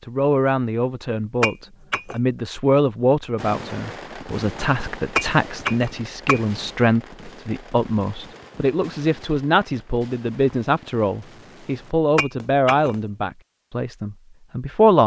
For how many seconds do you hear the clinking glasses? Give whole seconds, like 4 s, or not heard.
3 s.